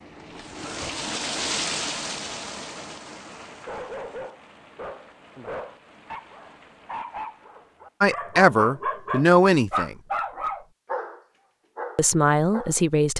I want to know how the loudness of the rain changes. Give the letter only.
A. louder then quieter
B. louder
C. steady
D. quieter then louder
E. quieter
E.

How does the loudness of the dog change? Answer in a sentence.
The volume of the dog goes up, then down.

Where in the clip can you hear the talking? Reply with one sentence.
You can hear the talking from 8.0 to 9.9 s and from 11.9 to 13.1 s.